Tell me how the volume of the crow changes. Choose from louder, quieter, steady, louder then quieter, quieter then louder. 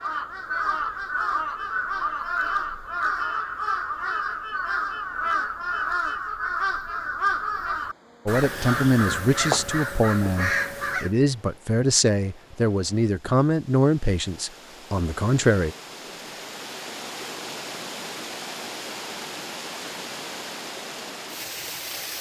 steady.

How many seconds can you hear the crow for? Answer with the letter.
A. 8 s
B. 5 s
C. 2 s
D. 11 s
D.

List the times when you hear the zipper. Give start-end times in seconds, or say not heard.
not heard.